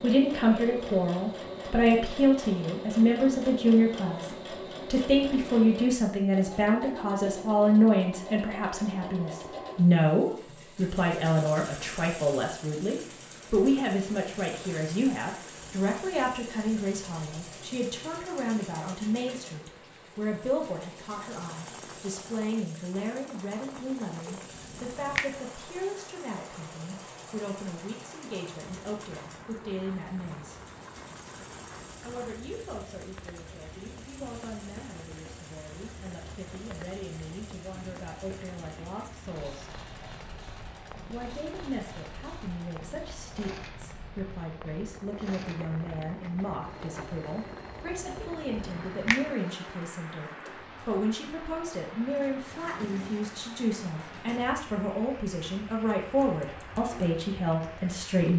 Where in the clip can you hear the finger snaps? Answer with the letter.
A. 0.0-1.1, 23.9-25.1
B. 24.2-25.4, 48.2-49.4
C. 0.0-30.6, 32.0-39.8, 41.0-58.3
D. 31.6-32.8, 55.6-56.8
B.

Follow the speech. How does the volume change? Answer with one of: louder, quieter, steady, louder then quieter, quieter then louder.
quieter then louder.